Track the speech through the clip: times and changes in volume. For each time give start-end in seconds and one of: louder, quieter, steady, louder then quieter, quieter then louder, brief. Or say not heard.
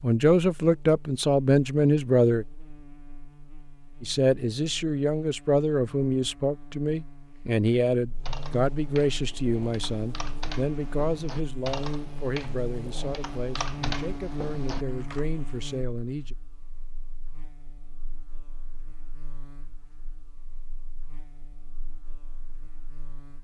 0.0-2.5 brief
4.0-16.4 quieter.